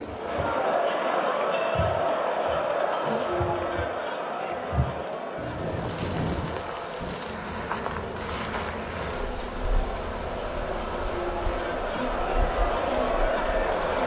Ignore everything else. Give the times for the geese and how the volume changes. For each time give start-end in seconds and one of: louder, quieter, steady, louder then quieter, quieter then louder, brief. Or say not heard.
not heard.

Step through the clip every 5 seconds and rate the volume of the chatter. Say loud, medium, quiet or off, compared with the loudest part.
loud, medium, loud.